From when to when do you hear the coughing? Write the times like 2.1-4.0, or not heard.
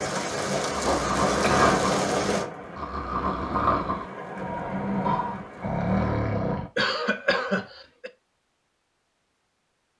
0.8-1.9, 6.8-8.1.